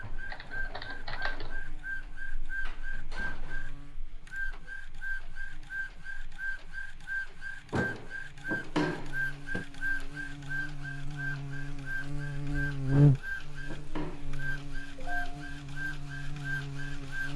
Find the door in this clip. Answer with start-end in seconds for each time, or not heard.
2.6-3.8, 7.7-9.7, 12.9-14.2.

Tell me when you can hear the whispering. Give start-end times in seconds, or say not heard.
not heard.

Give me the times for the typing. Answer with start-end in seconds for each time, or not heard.
0.0-1.6.